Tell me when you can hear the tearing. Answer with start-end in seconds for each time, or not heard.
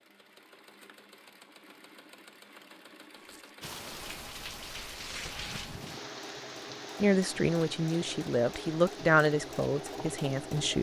4.6-5.8.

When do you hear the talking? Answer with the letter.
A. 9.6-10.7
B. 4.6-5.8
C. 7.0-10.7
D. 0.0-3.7
C.